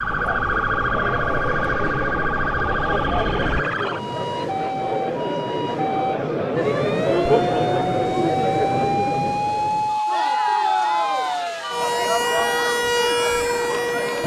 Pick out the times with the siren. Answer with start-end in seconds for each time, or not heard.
0.0-14.2.